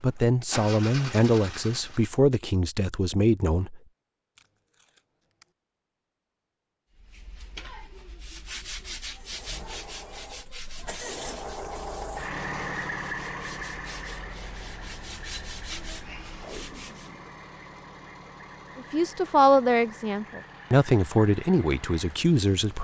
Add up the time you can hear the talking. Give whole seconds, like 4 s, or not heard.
8 s.